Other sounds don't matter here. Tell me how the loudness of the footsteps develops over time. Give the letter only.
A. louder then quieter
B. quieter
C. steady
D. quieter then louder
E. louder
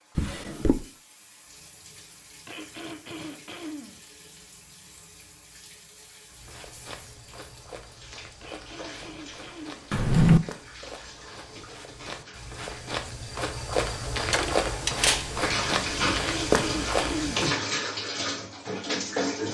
E.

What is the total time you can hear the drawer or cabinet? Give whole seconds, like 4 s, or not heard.
2 s.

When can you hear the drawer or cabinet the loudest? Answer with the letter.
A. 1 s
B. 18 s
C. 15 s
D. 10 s
D.